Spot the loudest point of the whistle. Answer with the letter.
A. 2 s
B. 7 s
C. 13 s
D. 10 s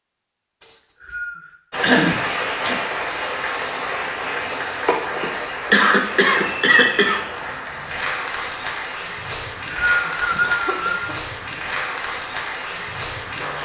D.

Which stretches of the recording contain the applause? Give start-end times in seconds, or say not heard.
1.7-13.5.